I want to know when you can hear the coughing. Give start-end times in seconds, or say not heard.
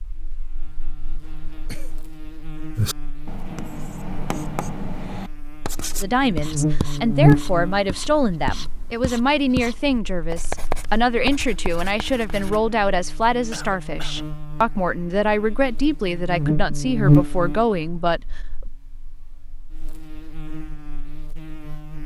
1.2-2.0, 13.5-14.2.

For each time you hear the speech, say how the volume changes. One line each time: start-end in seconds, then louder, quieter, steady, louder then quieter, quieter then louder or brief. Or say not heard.
6.0-18.4 steady.